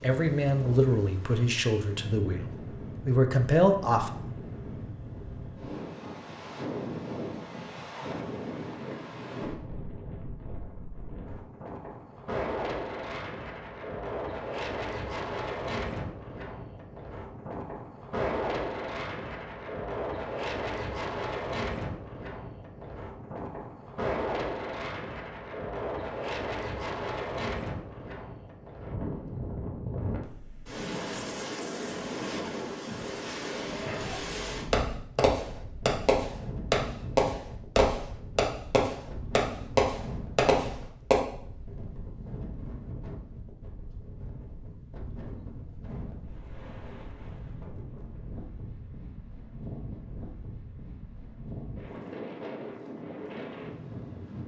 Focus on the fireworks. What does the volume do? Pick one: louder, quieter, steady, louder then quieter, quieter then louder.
steady.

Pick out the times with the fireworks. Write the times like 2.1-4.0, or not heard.
33.9-41.2.